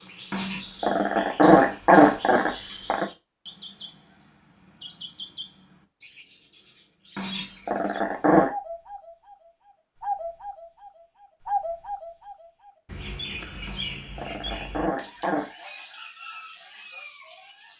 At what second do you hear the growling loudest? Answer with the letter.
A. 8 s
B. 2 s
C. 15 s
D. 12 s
B.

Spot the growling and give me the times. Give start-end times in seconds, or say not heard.
0.3-3.0, 7.2-8.5, 13.7-15.5.